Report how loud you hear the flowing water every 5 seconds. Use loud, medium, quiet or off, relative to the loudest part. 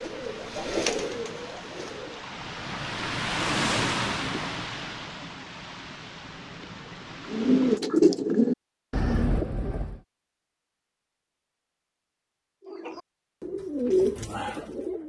loud, medium, off.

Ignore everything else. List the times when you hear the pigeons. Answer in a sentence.
The pigeons can be heard from 0.0 to 2.2 s, from 7.2 to 10.0 s and from 12.6 to 15.0 s.